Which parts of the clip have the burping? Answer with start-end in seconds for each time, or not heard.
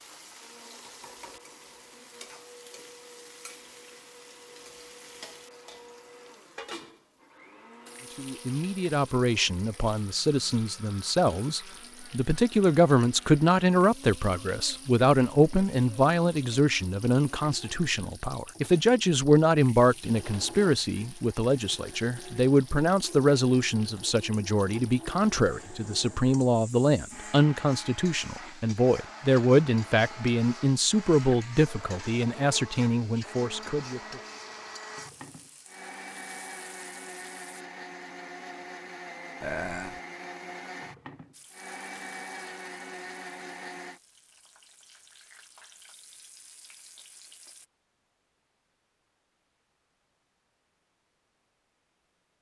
39.4-40.0.